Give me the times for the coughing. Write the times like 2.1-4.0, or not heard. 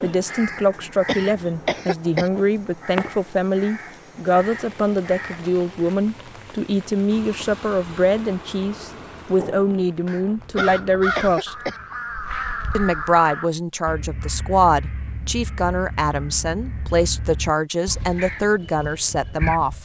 1.1-2.3, 10.6-11.8.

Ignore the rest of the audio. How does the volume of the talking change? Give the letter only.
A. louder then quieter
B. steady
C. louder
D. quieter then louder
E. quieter
B.